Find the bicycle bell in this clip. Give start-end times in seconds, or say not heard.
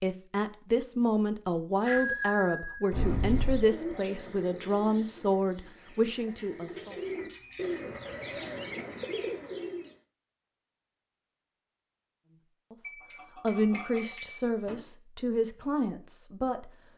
1.9-3.6, 6.9-8.4, 12.8-14.8.